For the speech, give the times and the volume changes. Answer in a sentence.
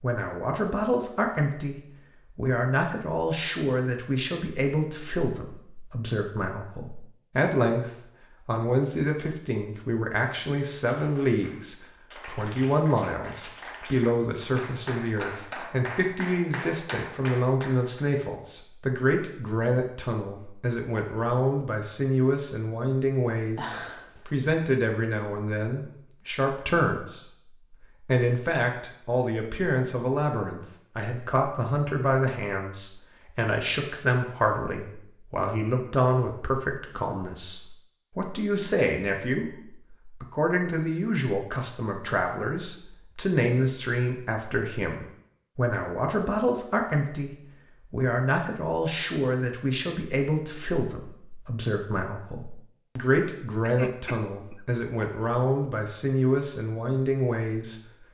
You can hear the speech from 0.0 to 27.4 s, at a steady volume; and from 28.1 to 57.8 s, at a steady volume.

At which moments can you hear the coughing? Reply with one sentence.
The coughing can be heard from 23.6 to 24.3 s and from 53.6 to 54.6 s.